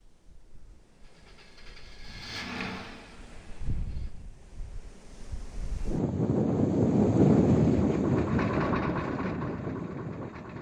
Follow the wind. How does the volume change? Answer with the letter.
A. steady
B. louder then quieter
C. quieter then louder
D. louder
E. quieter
B.